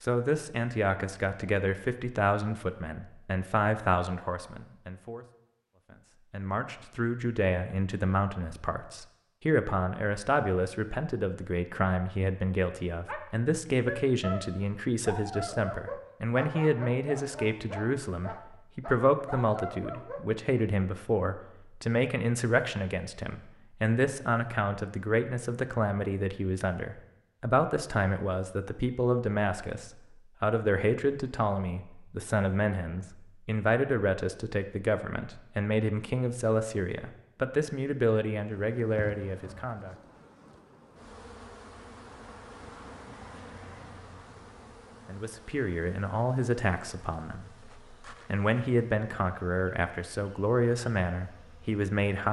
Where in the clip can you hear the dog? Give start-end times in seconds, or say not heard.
13.1-20.6.